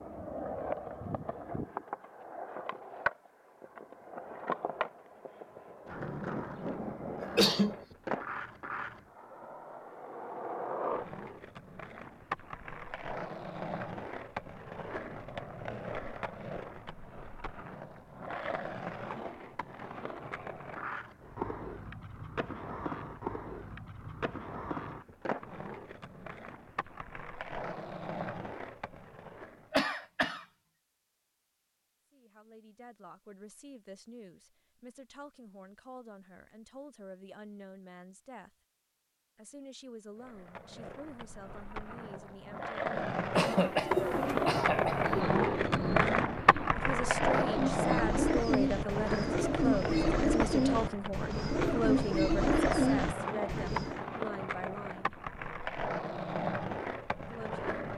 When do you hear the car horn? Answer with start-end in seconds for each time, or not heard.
not heard.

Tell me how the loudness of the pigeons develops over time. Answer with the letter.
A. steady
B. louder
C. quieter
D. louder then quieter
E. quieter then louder
B.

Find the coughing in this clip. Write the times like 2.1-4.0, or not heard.
7.2-7.8, 29.7-30.4, 43.4-45.1.